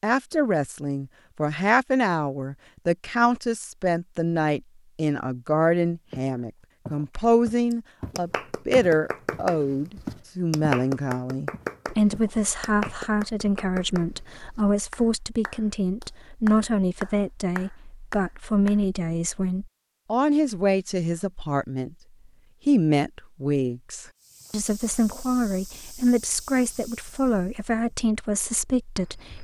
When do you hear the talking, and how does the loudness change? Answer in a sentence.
The talking can be heard from 0.0 to 21.9 s, at a steady volume; and from 22.6 to 29.3 s, at a steady volume.